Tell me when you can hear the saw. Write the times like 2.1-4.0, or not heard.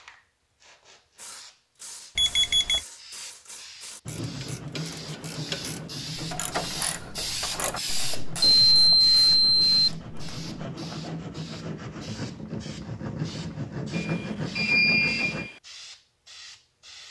4.0-15.5.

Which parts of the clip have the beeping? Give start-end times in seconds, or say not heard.
2.1-2.8, 8.6-9.9, 13.9-15.5.